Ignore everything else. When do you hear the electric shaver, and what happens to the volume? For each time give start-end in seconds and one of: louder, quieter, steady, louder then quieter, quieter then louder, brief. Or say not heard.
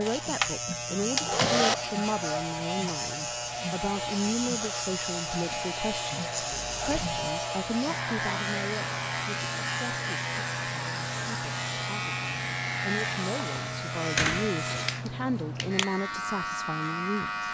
0.0-17.4 steady.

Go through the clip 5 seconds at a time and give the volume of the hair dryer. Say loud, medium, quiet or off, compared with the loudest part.
loud, medium, medium, off.